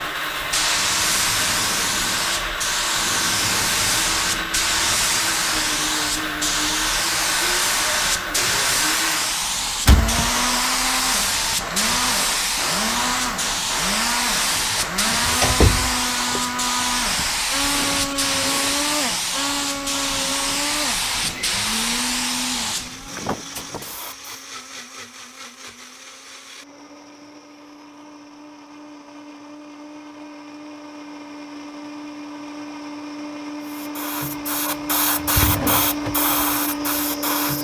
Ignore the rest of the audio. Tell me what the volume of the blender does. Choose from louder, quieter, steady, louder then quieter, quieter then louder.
quieter then louder.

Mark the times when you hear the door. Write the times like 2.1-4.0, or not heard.
9.8-10.3, 14.8-16.4, 35.3-35.7.